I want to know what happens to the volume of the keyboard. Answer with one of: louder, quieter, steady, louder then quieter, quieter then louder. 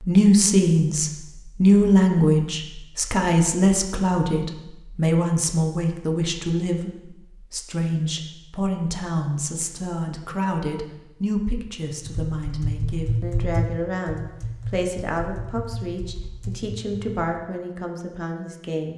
quieter.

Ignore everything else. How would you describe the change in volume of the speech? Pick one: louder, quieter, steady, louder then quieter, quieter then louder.
quieter.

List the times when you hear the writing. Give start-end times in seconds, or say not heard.
not heard.